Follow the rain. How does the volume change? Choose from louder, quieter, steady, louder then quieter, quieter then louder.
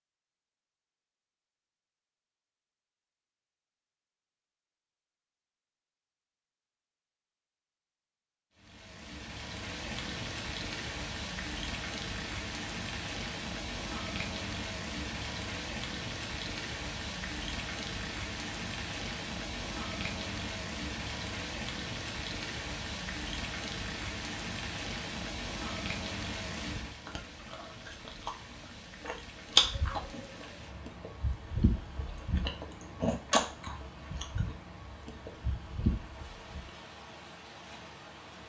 quieter.